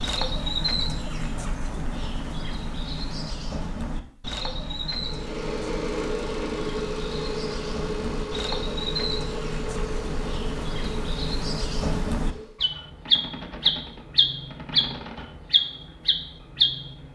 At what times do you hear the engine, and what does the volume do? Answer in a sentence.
The engine can be heard from 5.0 to 12.6 s, getting quieter.